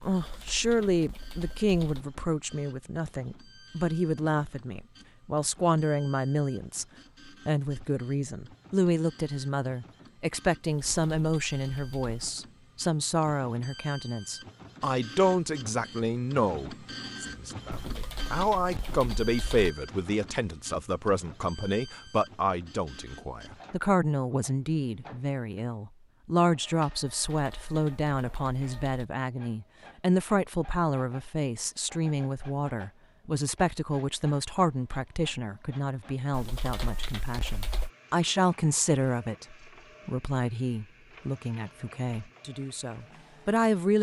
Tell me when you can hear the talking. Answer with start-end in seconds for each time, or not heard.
0.0-6.8, 7.5-43.9.